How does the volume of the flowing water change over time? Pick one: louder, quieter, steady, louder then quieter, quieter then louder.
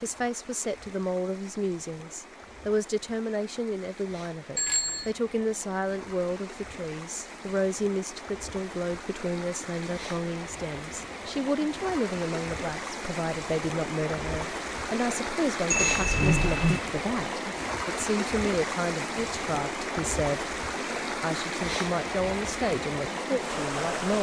louder.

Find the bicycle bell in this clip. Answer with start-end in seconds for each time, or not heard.
4.5-5.1, 15.7-16.8.